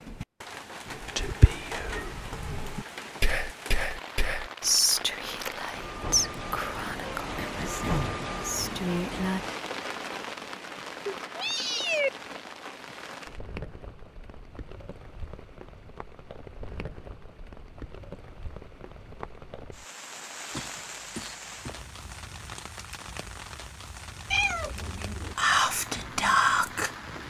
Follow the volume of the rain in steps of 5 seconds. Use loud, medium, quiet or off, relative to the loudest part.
medium, loud, medium, medium, medium, medium.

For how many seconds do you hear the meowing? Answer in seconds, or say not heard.
4 s.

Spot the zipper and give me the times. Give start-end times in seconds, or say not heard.
not heard.